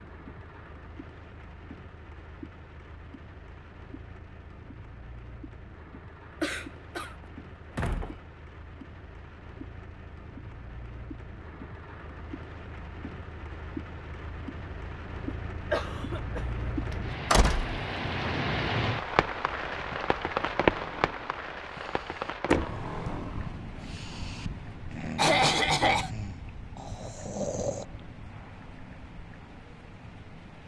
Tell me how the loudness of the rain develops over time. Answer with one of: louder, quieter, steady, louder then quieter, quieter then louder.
louder then quieter.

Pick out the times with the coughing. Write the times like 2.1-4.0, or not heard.
6.4-7.2, 15.2-17.0, 25.1-26.1.